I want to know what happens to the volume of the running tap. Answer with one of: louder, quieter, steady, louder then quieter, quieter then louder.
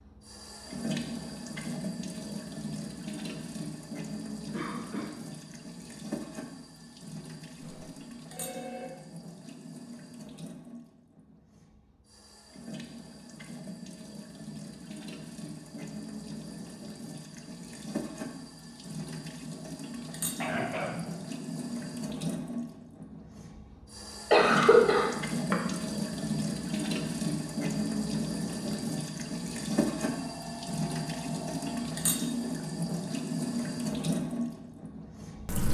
quieter then louder.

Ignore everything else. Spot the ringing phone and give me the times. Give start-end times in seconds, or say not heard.
7.6-8.9, 30.0-31.8.